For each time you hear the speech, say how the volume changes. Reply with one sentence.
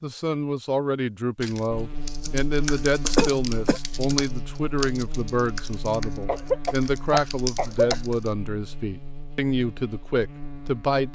You can hear the speech from 0.0 to 11.0 s, at a steady volume.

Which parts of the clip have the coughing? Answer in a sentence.
The coughing can be heard from 3.0 to 3.8 s and from 6.2 to 8.0 s.